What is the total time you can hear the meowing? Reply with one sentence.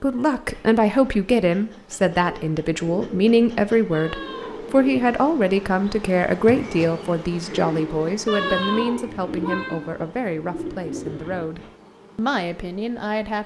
The meowing can be heard for 2 seconds in total.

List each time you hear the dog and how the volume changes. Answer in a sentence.
You can't hear the dog here.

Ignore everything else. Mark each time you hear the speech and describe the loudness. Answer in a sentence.
You can hear the speech from 0.0 to 13.4 s, getting quieter.